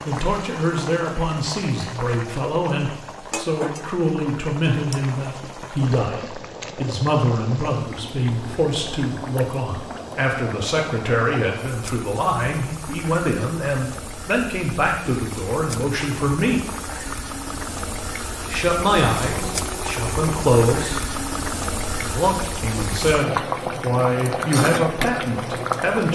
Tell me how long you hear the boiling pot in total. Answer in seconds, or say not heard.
26 s.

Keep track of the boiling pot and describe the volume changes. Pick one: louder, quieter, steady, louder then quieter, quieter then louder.
louder.